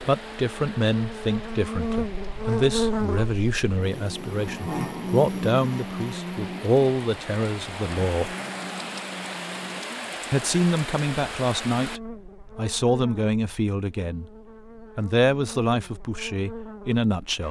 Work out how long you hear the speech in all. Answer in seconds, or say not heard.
15 s.